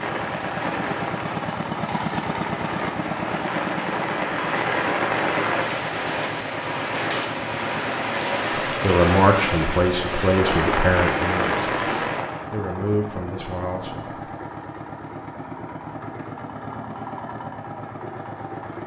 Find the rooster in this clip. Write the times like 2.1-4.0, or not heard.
not heard.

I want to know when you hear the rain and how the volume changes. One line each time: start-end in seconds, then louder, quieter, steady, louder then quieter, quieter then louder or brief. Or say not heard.
0.0-12.4 louder.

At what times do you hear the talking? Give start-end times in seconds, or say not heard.
8.8-14.2.